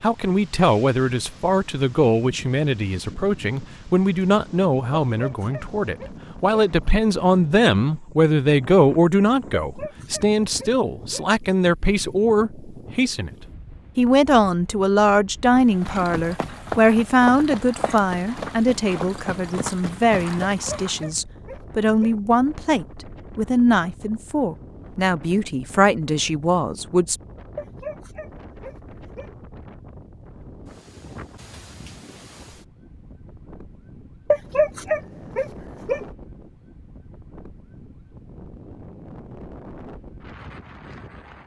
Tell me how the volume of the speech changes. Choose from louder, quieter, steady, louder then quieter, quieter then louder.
steady.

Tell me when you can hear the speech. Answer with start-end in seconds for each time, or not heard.
0.0-13.3, 13.9-27.1.